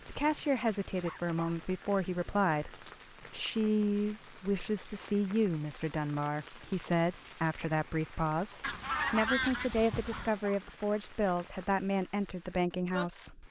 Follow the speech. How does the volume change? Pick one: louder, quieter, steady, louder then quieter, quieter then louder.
steady.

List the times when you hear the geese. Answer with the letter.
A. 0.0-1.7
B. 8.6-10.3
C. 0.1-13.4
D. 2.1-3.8
B.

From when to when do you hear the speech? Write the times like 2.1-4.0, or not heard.
0.1-13.4.